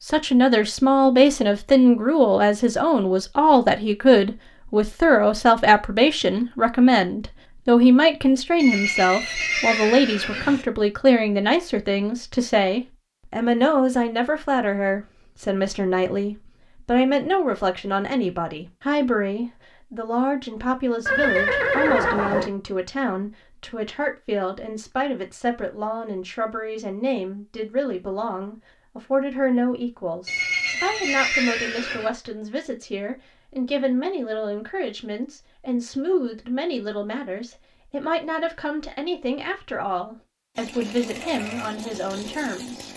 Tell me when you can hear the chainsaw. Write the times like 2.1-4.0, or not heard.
40.5-42.9.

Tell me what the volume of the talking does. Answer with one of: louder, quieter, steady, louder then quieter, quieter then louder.
quieter.